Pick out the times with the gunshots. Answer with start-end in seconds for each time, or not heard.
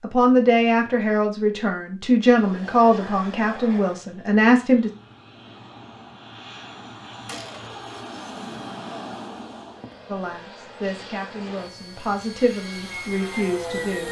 7.2-7.8.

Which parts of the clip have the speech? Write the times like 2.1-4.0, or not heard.
0.0-4.9, 10.1-14.0.